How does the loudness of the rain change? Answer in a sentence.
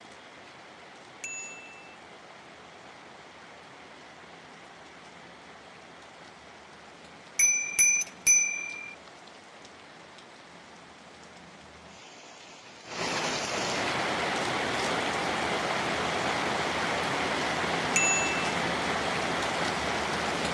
The loudness of the rain goes up.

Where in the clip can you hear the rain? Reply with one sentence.
The rain can be heard from 0.0 to 20.4 s.